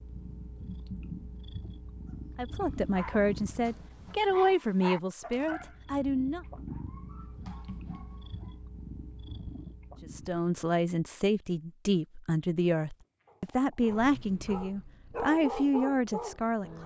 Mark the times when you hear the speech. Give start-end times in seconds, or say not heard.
2.4-6.5, 10.0-16.8.